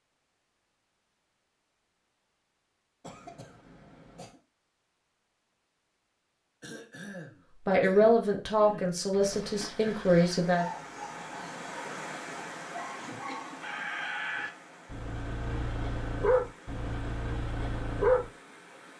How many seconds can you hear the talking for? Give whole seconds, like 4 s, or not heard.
3 s.